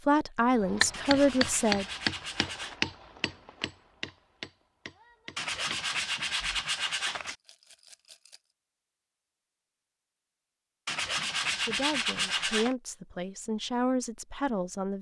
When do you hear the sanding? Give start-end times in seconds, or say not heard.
0.9-2.8, 5.3-7.3, 10.8-12.8.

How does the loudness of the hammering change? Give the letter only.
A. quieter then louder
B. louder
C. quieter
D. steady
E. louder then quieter
C.